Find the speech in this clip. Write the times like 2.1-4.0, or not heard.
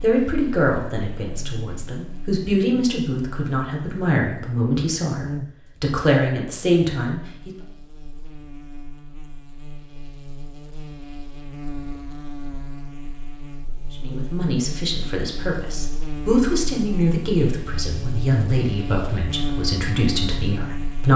0.0-7.5, 13.9-21.1.